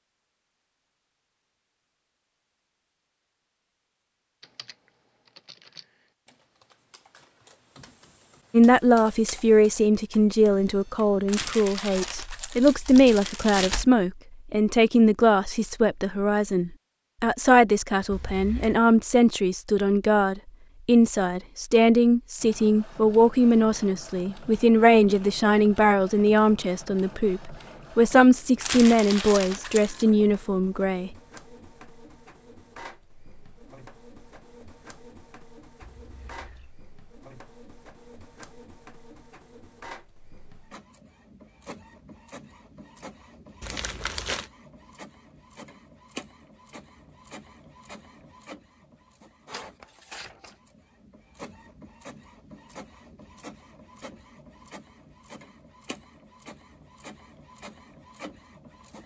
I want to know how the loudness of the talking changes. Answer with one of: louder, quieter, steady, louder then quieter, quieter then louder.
steady.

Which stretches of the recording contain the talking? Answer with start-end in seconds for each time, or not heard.
8.5-31.1.